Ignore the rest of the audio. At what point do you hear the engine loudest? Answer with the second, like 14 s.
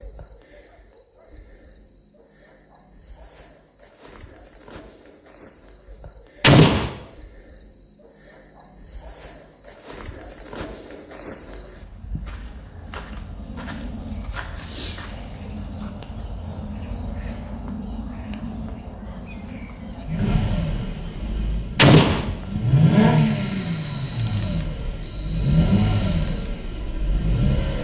23 s.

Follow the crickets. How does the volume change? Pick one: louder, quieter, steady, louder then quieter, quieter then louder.
louder then quieter.